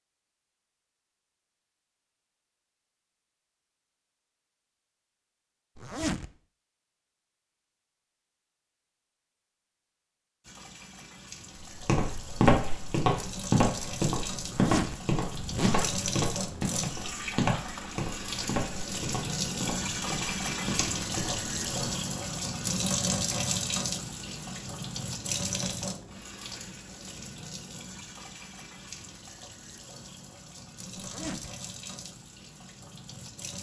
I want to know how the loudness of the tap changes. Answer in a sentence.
The volume of the tap goes up, then down.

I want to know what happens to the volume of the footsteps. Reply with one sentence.
The loudness of the footsteps goes down.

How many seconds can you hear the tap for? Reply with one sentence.
The tap can be heard for 23 seconds in total.